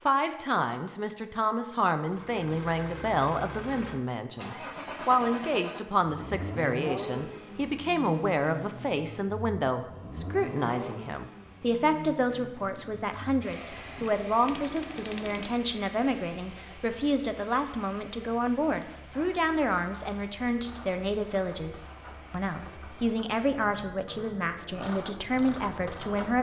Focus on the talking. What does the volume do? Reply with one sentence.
The loudness of the talking stays about the same.